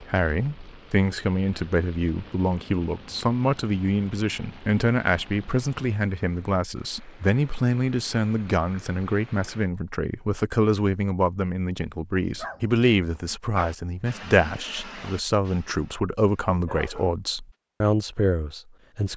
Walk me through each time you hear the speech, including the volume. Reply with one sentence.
The speech can be heard from 0.0 to 19.1 s, at a steady volume.